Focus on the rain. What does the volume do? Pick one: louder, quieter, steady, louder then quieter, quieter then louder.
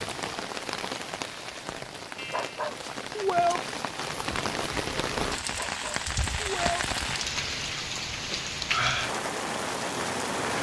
louder.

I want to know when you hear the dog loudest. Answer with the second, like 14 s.
3 s.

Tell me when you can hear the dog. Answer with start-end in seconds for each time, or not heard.
2.1-3.6, 5.5-6.8.